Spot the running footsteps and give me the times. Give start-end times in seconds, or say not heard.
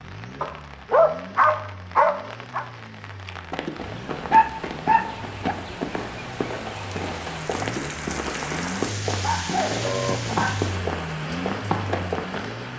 3.5-12.6.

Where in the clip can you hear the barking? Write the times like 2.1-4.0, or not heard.
0.4-2.6, 4.3-5.5, 9.2-10.8.